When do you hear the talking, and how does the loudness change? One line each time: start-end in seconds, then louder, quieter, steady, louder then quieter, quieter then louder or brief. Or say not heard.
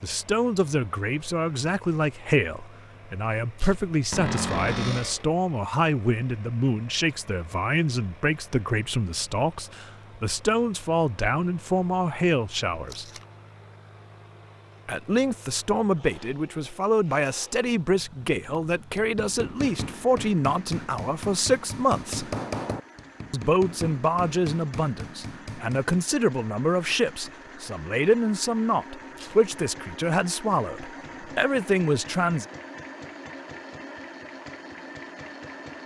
0.0-13.1 steady
14.8-22.4 steady
23.3-32.5 steady.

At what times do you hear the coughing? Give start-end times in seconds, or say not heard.
not heard.